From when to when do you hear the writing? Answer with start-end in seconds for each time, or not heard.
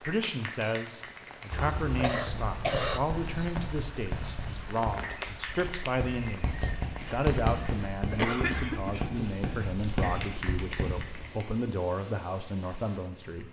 1.5-11.2.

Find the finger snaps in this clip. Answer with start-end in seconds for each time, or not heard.
0.0-1.5, 5.0-6.0, 10.0-11.6.